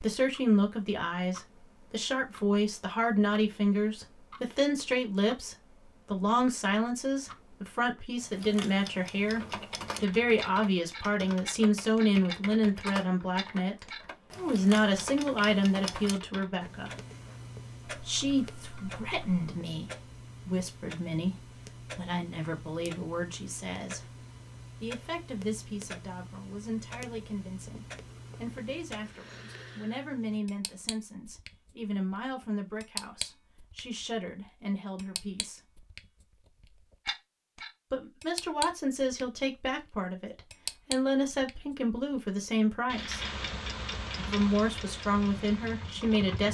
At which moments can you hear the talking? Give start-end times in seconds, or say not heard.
0.0-16.9, 18.1-35.6, 37.9-43.2, 44.2-46.5.